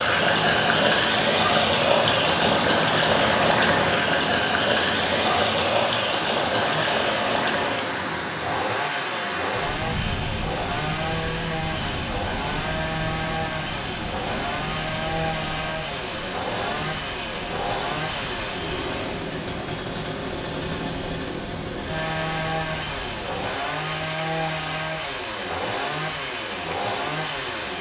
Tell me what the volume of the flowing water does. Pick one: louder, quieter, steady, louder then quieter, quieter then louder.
quieter.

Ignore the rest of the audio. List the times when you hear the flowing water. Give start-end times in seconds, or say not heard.
0.0-27.7.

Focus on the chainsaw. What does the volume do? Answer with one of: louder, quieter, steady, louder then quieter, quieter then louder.
steady.